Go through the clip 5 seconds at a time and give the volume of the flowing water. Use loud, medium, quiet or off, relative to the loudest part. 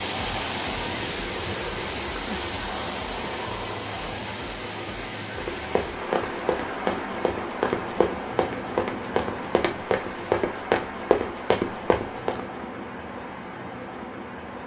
loud, loud, medium.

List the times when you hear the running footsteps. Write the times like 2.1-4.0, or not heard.
5.3-12.4.